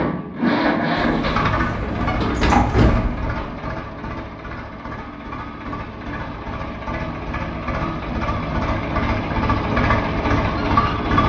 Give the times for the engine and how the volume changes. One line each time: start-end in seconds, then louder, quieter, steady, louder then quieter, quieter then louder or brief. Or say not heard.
0.0-11.2 quieter then louder.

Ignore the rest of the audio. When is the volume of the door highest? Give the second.
3 s.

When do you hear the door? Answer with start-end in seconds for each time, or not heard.
0.9-3.5.